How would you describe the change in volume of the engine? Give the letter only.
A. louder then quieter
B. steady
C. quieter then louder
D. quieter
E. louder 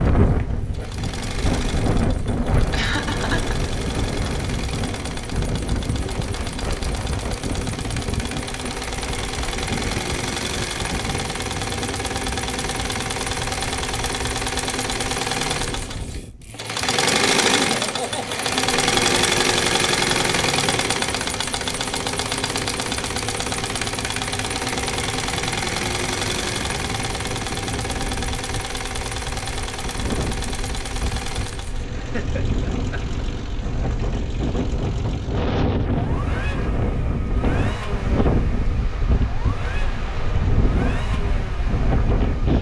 A.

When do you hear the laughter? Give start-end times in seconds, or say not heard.
2.7-3.5, 17.6-18.4, 31.9-33.0.